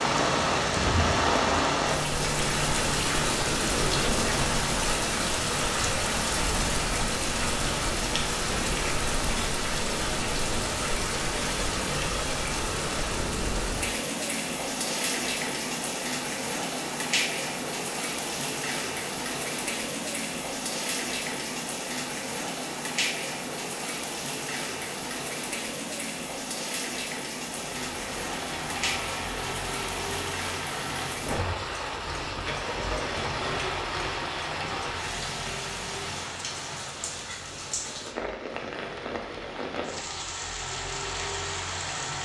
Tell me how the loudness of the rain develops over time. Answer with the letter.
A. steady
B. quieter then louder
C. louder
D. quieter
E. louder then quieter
D.